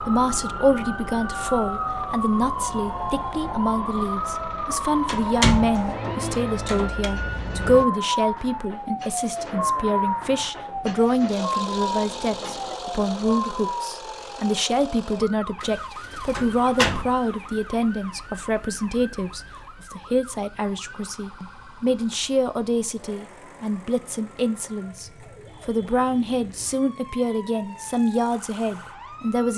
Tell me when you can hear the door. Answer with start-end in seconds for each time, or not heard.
5.0-7.0, 16.4-17.1.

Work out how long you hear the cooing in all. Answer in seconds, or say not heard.
not heard.